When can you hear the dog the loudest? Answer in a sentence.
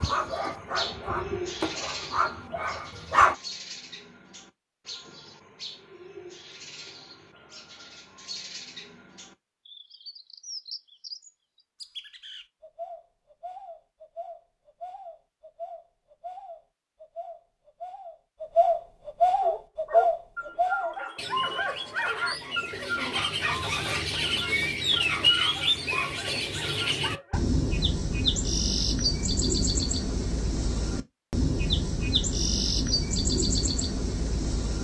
The loudest moment of the dog is at 3 seconds.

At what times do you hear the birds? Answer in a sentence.
You can hear the birds from 0.0 to 34.7 s.